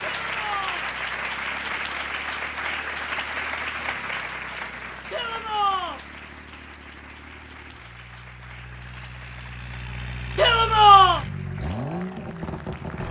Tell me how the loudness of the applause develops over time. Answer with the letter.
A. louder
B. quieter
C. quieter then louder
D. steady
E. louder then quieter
B.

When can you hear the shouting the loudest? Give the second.
11 s.